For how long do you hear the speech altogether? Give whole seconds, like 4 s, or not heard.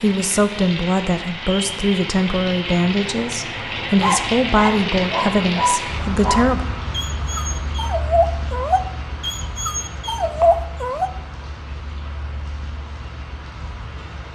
7 s.